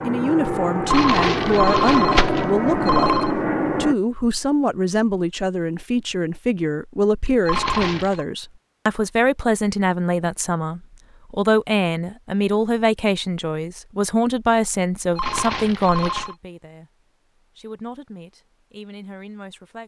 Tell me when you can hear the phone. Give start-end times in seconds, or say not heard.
0.8-3.4, 7.5-8.2, 15.2-16.4.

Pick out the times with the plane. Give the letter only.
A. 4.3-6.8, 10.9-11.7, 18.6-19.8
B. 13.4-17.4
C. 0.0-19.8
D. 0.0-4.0
D.